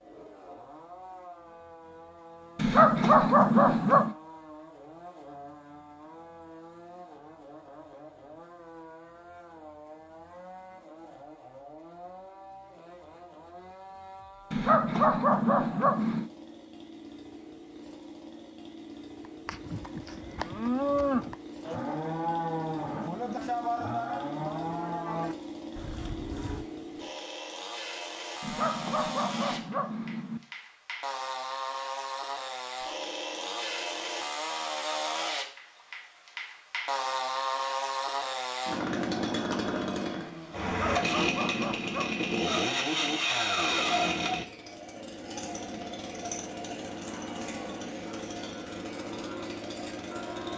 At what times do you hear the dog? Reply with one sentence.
The dog can be heard from 2.5 to 4.2 s, from 14.5 to 16.3 s, from 28.4 to 30.4 s and from 40.6 to 42.6 s.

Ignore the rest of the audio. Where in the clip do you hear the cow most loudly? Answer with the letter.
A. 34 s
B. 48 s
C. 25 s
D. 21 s
D.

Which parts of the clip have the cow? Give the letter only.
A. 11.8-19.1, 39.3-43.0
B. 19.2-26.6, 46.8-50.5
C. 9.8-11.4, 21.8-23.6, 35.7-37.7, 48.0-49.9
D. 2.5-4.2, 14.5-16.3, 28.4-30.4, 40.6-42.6
B.